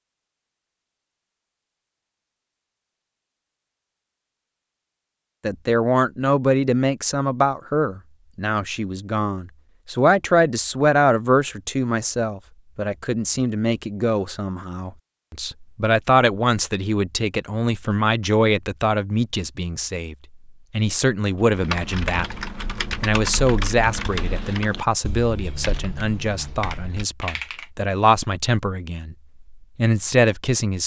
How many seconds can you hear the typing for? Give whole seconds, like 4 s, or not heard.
6 s.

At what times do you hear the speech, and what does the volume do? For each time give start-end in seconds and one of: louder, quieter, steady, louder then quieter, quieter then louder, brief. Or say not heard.
5.4-30.8 steady.